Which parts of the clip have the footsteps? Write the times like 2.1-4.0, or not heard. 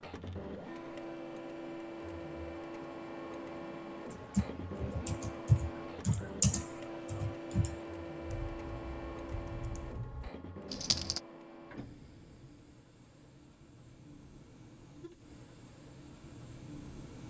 not heard.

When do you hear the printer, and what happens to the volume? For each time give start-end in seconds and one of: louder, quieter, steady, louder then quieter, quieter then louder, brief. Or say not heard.
0.0-17.2 quieter.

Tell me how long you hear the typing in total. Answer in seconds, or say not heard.
7 s.